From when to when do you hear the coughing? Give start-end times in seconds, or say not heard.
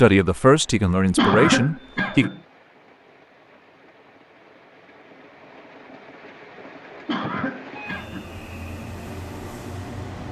1.1-2.4, 7.0-8.3.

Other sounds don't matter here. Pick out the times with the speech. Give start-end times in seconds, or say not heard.
0.0-2.3.